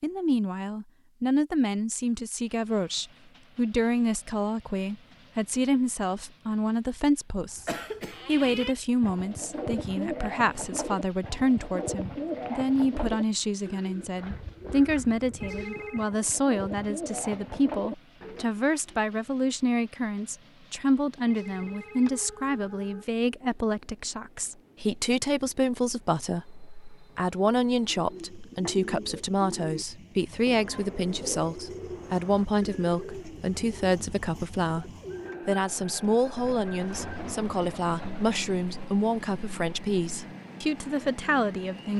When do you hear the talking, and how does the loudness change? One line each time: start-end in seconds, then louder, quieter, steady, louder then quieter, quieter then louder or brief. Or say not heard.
0.0-41.9 steady.